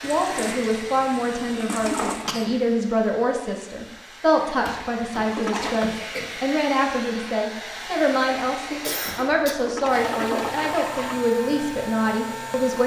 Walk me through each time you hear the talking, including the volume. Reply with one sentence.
You can hear the talking from 0.0 to 12.8 s, at a steady volume.